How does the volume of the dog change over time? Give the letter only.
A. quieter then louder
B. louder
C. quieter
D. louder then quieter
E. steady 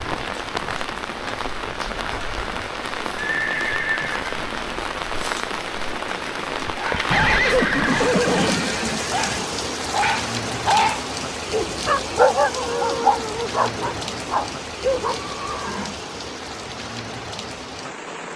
D.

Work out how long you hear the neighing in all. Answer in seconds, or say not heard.
4 s.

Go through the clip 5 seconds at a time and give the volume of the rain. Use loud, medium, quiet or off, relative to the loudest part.
loud, loud, loud, medium.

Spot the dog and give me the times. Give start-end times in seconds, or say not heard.
6.8-15.2.